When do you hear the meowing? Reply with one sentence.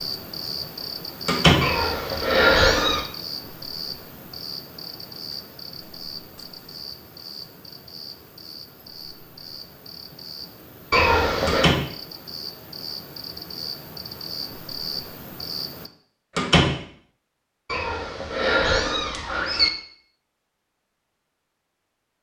The meowing can be heard from 1.6 to 3.0 s, from 10.9 to 11.7 s and from 17.6 to 19.7 s.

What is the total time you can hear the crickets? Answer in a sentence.
You can hear the crickets for 16 seconds altogether.